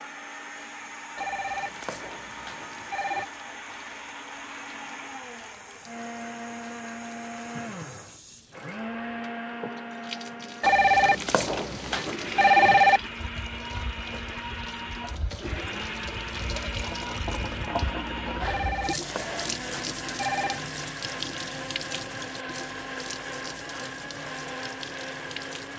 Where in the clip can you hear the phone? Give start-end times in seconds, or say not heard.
1.1-3.3, 10.6-13.0, 18.4-20.6.